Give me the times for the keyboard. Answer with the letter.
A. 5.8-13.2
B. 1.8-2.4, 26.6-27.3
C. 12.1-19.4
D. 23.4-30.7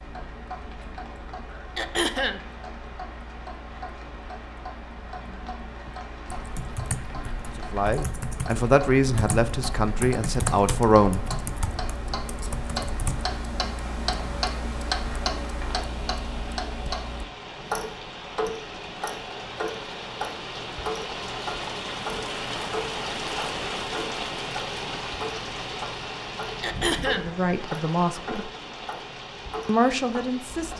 A.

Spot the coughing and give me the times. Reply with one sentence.
You can hear the coughing from 1.8 to 2.4 s and from 26.6 to 27.3 s.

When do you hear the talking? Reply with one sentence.
You can hear the talking from 7.7 to 11.2 s, from 27.0 to 28.5 s and from 29.6 to 30.7 s.